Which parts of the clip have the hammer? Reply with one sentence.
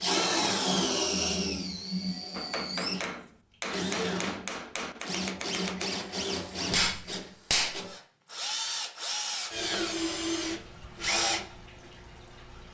The hammer can be heard from 2.3 to 7.8 s.